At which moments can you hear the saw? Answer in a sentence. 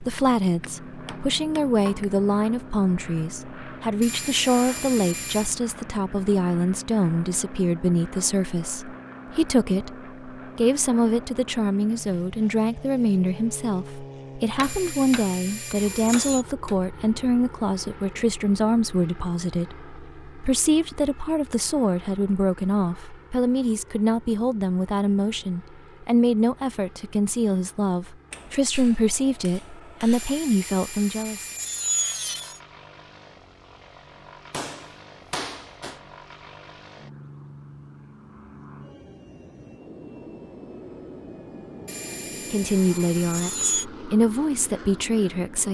The saw can be heard from 4.0 to 5.5 s, from 14.6 to 16.4 s, from 30.1 to 32.6 s and from 41.9 to 43.9 s.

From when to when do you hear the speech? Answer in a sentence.
You can hear the speech from 0.0 to 31.4 s and from 42.5 to 45.6 s.